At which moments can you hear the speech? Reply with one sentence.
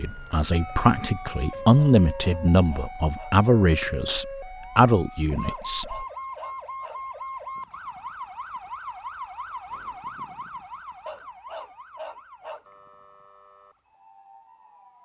The speech can be heard from 0.0 to 6.0 s.